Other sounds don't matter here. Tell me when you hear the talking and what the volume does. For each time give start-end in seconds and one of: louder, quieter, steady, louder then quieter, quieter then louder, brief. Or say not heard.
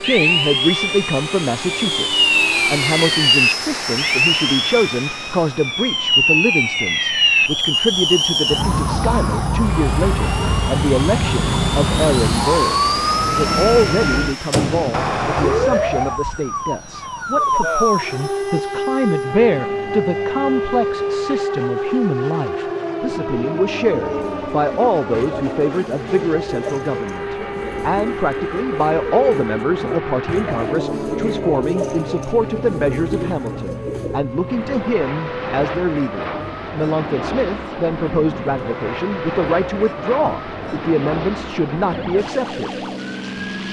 0.0-42.7 steady.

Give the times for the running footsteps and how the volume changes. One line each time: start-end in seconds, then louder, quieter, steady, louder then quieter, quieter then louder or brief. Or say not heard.
not heard.